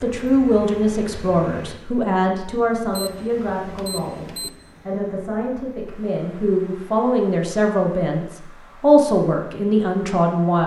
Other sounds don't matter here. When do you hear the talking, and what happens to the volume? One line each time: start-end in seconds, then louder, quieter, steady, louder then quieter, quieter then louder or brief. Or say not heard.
0.0-10.6 quieter then louder.